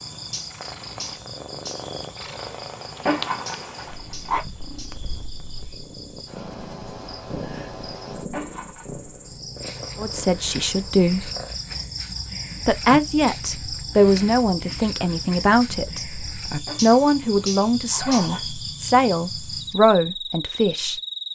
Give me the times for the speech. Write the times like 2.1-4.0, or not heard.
9.9-11.3, 12.7-21.0.